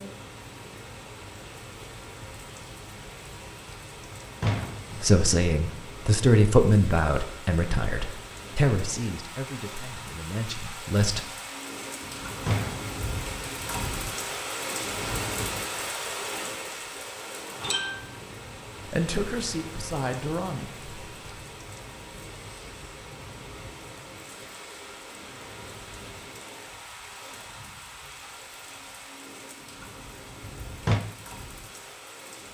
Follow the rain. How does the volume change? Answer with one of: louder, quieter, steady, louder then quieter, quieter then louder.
louder then quieter.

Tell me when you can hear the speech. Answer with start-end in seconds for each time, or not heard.
5.0-11.2, 18.9-20.9.